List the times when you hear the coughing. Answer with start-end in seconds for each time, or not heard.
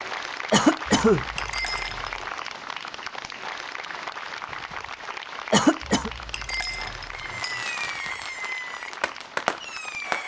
0.5-1.2, 5.5-6.1.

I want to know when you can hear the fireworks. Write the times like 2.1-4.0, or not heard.
7.1-10.2.